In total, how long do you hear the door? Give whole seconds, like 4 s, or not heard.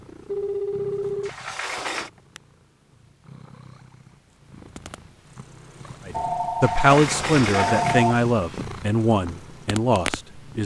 3 s.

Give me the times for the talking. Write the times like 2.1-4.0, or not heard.
6.0-10.6.